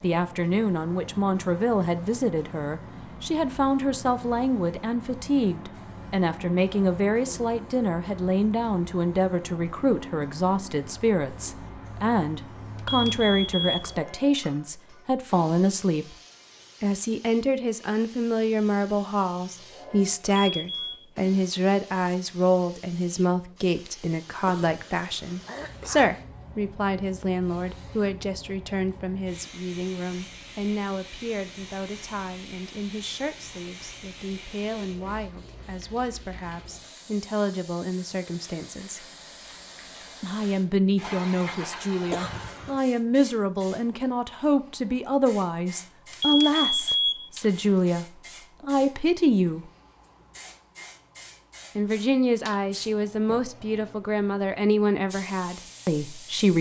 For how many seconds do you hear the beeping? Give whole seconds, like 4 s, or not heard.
3 s.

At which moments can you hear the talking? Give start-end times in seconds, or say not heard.
0.0-16.1, 16.8-39.0, 40.2-49.7, 51.8-56.5.